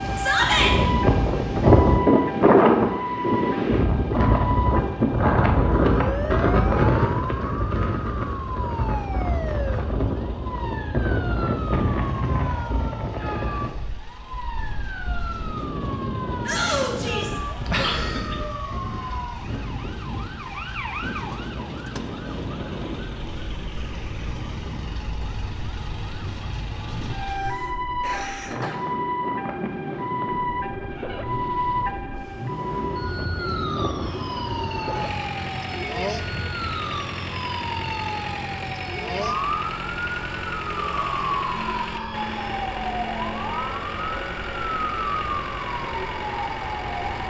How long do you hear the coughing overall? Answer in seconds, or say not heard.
2 s.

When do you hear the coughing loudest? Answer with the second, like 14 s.
18 s.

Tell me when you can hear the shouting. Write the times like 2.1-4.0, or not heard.
0.1-0.8, 16.4-17.4, 40.8-42.5.